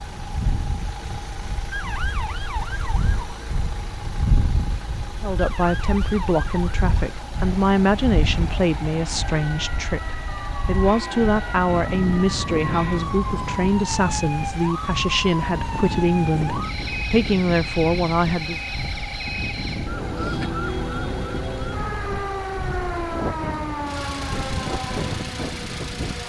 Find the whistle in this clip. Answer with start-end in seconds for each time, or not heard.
not heard.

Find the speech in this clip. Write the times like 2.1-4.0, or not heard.
5.2-18.6.